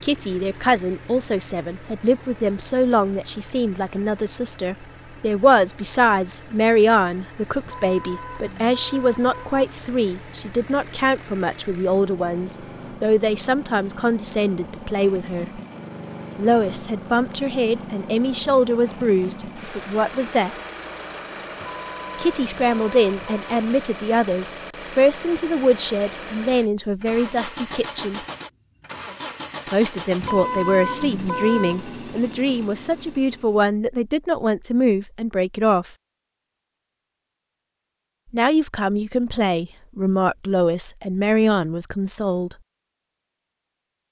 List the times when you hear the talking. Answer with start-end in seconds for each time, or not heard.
0.0-15.6, 16.4-20.6, 22.1-28.2, 29.7-35.9, 38.3-42.5.